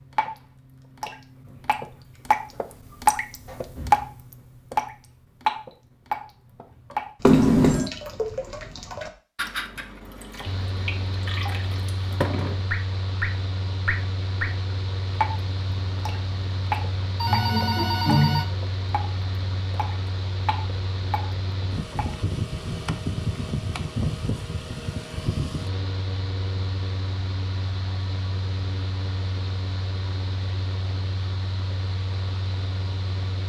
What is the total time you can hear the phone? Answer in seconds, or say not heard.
2 s.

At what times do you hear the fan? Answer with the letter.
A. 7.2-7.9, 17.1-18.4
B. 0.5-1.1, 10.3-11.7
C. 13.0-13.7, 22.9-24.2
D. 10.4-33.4
D.